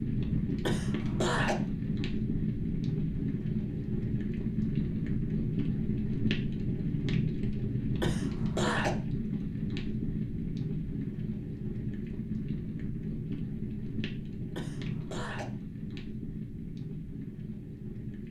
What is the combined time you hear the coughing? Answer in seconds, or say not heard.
3 s.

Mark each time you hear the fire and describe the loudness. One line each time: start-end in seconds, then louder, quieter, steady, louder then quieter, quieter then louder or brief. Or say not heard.
0.0-18.2 quieter.